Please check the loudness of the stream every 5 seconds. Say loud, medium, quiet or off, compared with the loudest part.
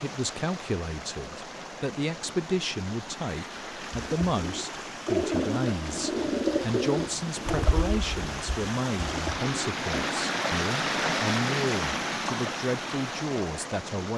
medium, medium, loud.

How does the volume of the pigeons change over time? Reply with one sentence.
The loudness of the pigeons goes down.